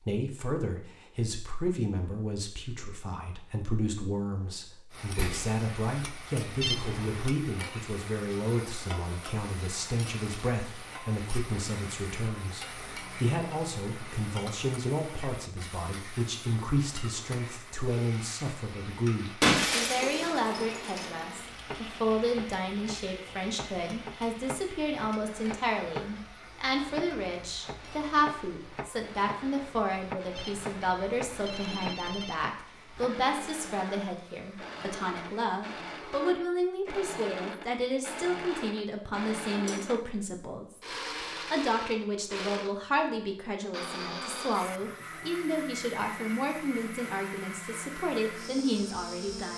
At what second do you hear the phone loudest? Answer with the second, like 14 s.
7 s.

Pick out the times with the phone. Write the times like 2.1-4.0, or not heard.
6.6-7.3, 30.4-32.4.